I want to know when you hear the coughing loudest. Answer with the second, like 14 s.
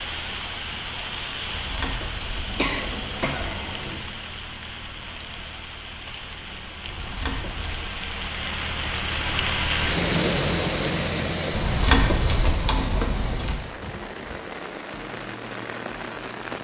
3 s.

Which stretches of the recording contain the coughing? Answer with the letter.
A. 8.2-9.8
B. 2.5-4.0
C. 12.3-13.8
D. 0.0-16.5
B.